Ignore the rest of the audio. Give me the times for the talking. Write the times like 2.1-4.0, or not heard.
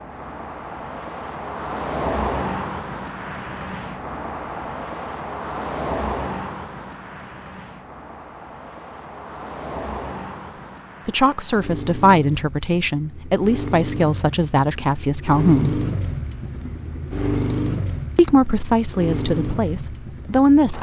11.1-15.8, 18.1-20.7.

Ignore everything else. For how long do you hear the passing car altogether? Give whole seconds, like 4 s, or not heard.
21 s.